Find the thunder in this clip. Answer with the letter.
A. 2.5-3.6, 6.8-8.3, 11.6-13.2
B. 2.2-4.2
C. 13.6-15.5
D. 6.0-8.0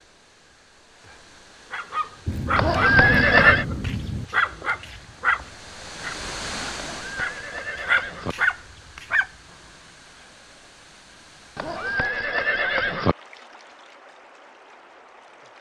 B.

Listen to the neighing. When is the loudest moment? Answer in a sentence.
The volume of the neighing peaks at 3 seconds.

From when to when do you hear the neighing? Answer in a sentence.
The neighing can be heard from 2.5 to 3.6 s, from 6.8 to 8.3 s and from 11.6 to 13.2 s.